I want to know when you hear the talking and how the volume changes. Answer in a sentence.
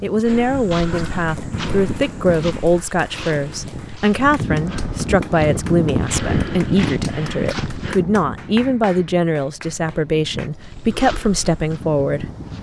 The talking can be heard from 0.0 to 12.3 s, at a steady volume.